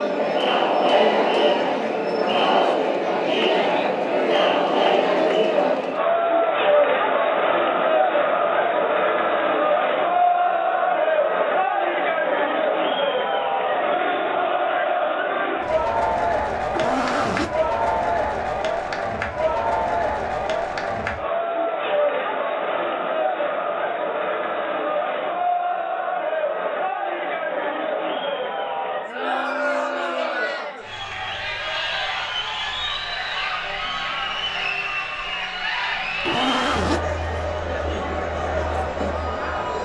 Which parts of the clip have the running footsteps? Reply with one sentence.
You can't hear the running footsteps here.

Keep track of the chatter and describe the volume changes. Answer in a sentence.
The volume of the chatter goes down.